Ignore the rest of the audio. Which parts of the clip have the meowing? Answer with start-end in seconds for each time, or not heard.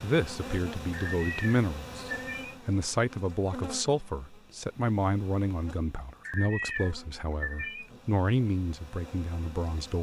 0.9-2.5, 6.2-7.9.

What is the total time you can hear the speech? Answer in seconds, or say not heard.
10 s.